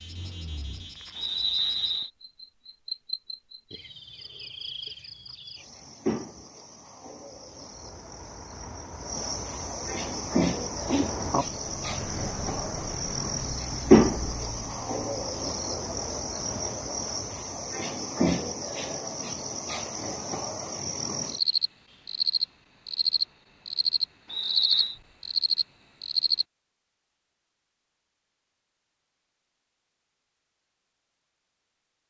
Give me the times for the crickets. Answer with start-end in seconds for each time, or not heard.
0.0-26.4.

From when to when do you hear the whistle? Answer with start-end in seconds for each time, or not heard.
1.1-2.1, 24.2-25.0.